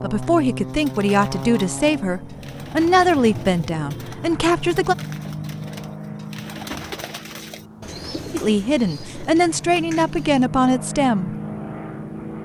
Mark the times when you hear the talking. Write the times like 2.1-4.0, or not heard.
0.0-5.0, 8.3-11.3.